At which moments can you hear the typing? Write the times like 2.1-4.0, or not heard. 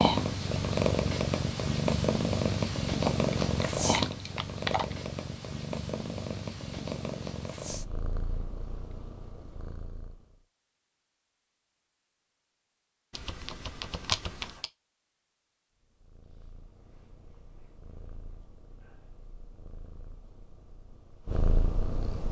3.0-5.0, 13.1-14.7.